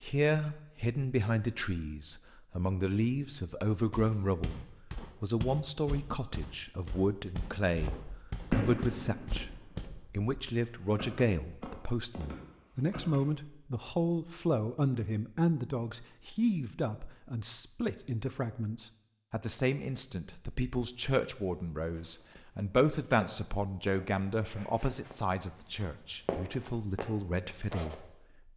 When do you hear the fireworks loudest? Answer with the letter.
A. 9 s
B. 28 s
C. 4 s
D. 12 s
A.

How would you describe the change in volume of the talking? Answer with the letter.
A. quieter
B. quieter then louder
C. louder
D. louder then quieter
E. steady
E.